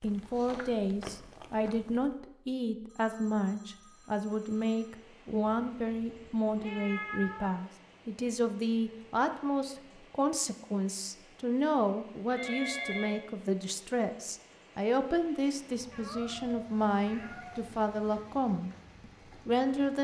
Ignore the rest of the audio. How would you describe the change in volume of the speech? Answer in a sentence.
The volume of the speech stays about the same.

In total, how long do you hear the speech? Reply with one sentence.
The speech can be heard for 20 seconds in total.